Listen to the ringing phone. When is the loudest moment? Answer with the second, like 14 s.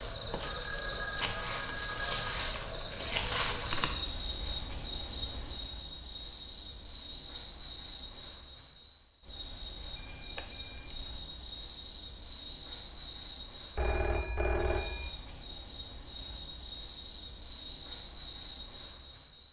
15 s.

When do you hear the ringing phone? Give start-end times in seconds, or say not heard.
0.4-2.5, 9.9-11.1, 13.8-15.1.